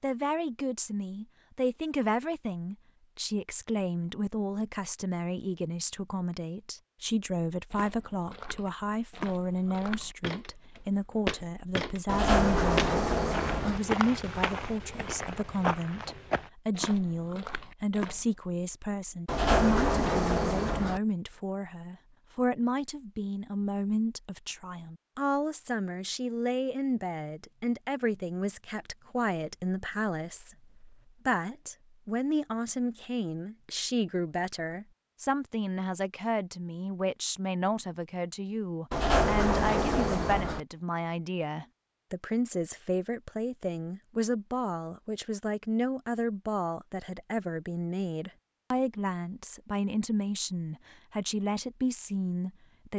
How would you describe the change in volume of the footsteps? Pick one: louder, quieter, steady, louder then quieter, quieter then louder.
louder then quieter.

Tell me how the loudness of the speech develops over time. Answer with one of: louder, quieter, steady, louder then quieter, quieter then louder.
steady.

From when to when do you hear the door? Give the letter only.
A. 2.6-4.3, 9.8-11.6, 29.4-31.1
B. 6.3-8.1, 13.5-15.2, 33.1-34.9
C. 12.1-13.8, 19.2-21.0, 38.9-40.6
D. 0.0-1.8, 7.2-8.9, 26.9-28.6
C.